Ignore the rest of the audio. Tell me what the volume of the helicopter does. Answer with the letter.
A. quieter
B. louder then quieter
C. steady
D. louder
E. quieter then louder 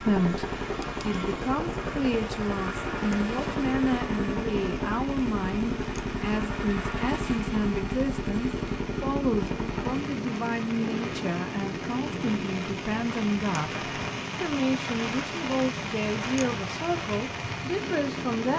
A.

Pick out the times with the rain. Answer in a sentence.
You can hear the rain from 0.0 to 18.5 s.